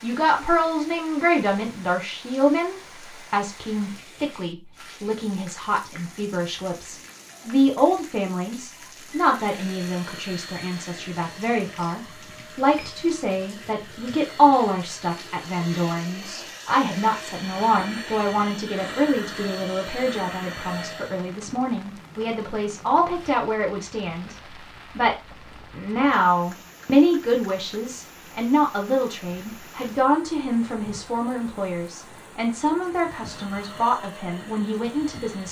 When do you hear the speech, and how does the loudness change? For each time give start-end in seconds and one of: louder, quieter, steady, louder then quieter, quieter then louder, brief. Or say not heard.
0.0-35.4 steady.